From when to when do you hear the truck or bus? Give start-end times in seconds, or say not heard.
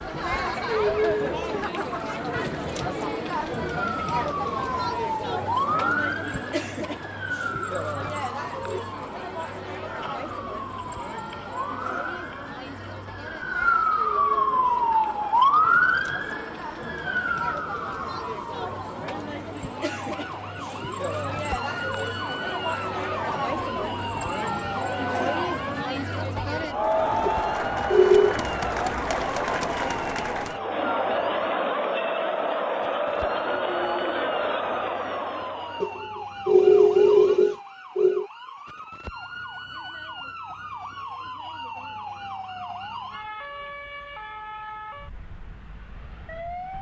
not heard.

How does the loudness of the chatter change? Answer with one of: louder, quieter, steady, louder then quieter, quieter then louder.
quieter then louder.